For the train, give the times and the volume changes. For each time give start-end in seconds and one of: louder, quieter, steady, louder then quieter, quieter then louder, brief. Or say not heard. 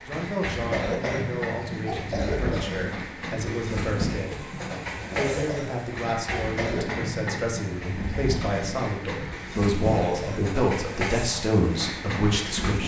0.0-12.8 steady.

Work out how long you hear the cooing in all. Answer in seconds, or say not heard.
not heard.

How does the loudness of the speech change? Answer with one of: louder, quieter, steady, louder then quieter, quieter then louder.
louder.